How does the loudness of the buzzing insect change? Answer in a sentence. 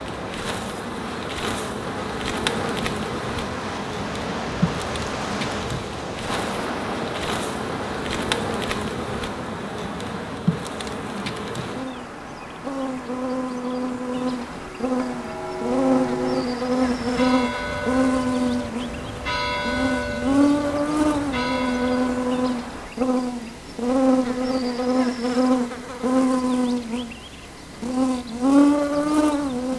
The volume of the buzzing insect goes up.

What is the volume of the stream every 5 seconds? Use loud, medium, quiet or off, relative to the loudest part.
loud, loud, medium, medium, medium, off.